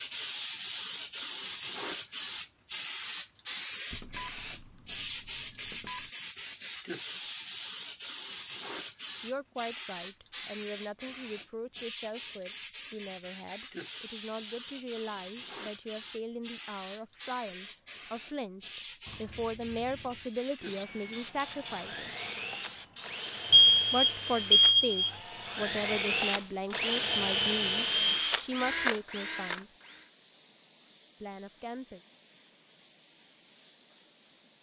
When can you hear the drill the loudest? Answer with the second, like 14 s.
28 s.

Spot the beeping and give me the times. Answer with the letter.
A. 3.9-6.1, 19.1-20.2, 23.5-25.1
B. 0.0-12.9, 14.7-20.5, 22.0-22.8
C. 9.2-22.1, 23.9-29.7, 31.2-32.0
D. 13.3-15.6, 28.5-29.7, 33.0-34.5
A.